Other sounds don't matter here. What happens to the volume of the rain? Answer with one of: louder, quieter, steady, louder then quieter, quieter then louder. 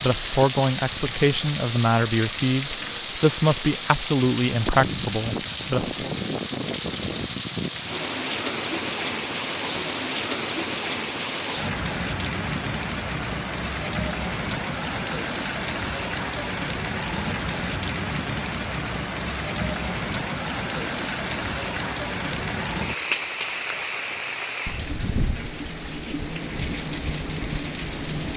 steady.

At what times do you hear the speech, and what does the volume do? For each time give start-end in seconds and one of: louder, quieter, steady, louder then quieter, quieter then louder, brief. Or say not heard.
0.0-6.1 steady.